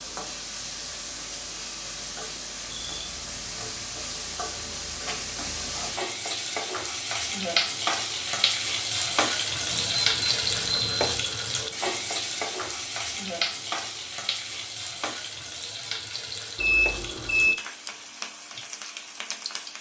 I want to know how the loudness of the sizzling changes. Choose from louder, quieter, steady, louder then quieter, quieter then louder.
louder then quieter.